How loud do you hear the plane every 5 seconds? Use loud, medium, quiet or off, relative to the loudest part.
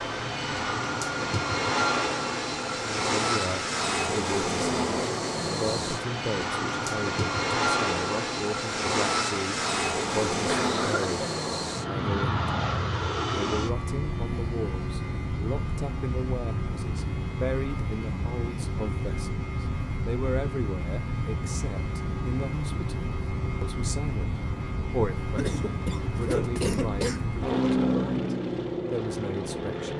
loud, loud, loud, medium, medium, loud.